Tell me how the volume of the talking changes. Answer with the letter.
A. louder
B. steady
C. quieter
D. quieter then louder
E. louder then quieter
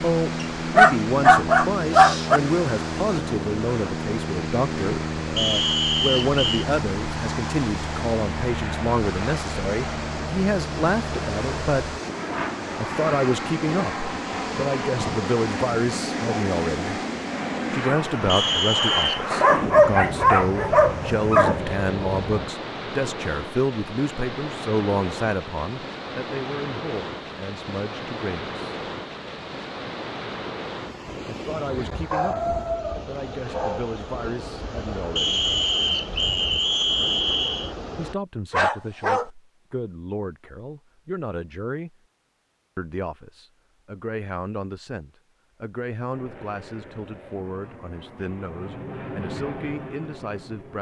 C.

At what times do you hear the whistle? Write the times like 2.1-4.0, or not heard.
5.3-6.7, 18.2-19.2, 35.1-37.8.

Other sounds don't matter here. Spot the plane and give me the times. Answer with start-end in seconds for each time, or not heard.
0.0-22.5, 46.1-50.7.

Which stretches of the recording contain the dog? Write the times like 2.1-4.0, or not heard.
0.4-2.4, 19.3-21.6, 32.1-34.0, 38.5-39.3.